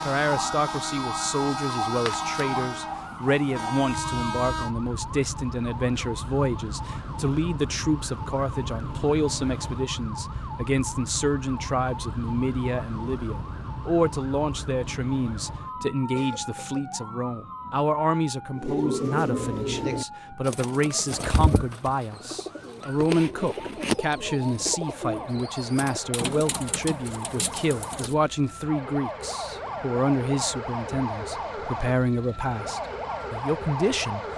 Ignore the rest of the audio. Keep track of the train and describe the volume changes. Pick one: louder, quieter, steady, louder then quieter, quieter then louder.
quieter then louder.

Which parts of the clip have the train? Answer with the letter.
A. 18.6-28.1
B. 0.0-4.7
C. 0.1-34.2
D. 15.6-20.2
B.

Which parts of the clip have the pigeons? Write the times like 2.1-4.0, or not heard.
18.6-28.1.